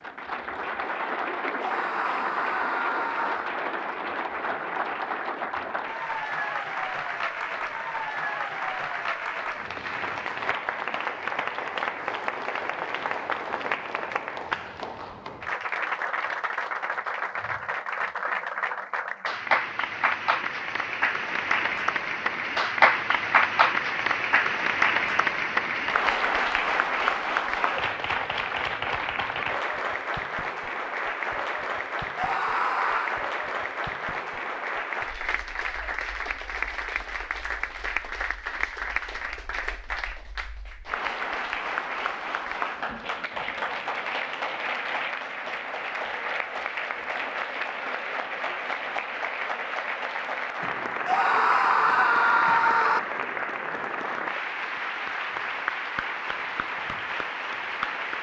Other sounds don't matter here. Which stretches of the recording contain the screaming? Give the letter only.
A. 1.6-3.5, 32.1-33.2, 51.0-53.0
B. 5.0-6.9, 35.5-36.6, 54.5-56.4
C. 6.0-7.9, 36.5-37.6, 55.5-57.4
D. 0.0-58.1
A.